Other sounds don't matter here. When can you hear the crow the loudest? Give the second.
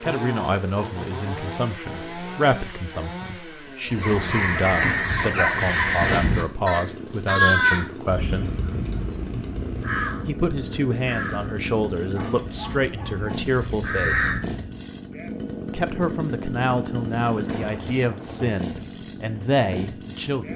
8 s.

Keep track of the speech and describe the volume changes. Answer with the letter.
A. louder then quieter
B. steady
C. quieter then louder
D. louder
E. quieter
B.